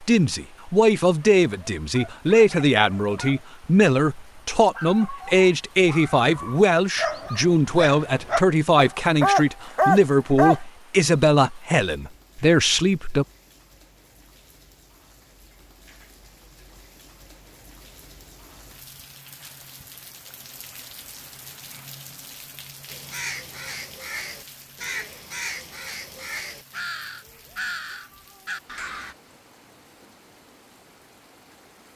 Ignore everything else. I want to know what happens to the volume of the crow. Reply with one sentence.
The volume of the crow stays about the same.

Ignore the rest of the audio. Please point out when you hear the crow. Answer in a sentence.
The crow can be heard from 22.9 to 29.1 s.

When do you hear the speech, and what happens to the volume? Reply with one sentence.
The speech can be heard from 0.0 to 13.2 s, at a steady volume.